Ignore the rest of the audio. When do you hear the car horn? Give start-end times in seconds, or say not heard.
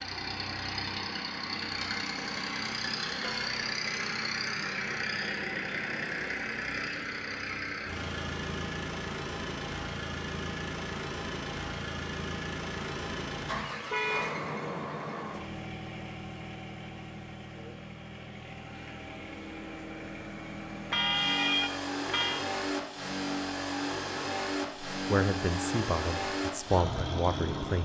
2.1-4.0, 13.9-14.3, 20.9-22.4.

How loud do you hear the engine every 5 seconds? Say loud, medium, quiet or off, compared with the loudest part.
loud, loud, loud, medium, loud, loud.